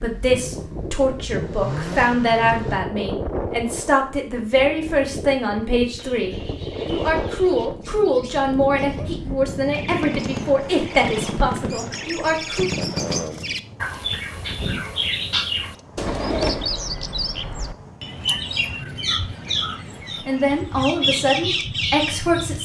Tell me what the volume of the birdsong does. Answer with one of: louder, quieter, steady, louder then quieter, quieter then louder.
louder.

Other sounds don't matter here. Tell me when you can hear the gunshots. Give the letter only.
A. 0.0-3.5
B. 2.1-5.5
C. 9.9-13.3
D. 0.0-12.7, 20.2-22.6
C.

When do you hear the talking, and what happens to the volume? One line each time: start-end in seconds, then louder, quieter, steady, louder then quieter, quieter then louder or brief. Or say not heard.
0.0-12.7 steady
20.2-22.6 brief.